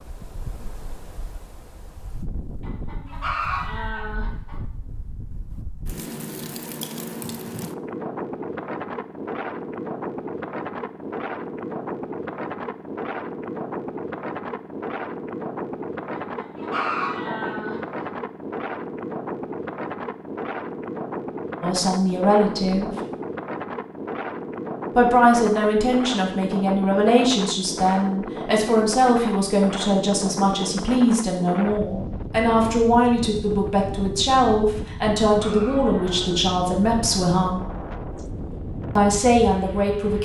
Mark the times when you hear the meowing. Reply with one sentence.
You can't hear the meowing here.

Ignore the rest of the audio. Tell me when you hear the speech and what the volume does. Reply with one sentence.
You can hear the speech briefly from 21.6 to 22.9 s; from 24.9 to 37.6 s, at a steady volume; and briefly from 39.0 to 40.2 s.